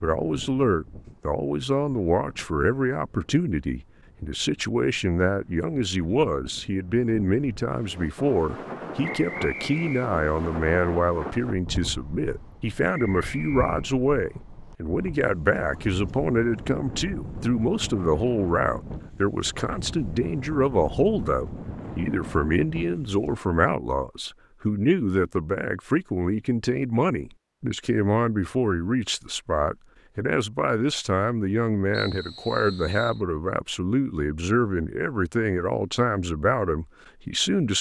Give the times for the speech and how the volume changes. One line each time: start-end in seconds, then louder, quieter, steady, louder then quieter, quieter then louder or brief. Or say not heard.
0.0-37.7 steady.